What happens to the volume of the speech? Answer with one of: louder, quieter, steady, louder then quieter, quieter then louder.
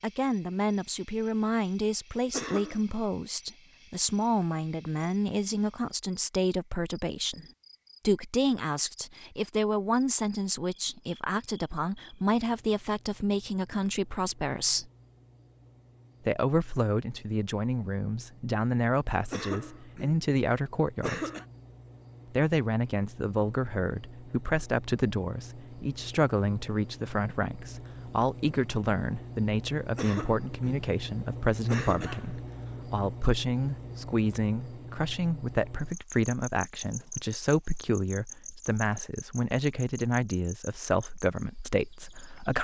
steady.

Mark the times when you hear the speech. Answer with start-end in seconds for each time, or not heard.
0.0-7.5, 8.1-14.9, 16.2-21.3, 22.3-42.6.